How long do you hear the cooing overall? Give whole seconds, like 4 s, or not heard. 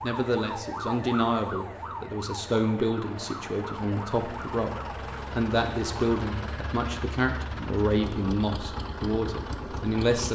not heard.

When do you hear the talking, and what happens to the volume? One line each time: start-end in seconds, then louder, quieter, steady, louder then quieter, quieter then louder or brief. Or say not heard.
0.0-10.3 steady.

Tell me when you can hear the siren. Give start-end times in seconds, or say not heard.
0.0-6.2.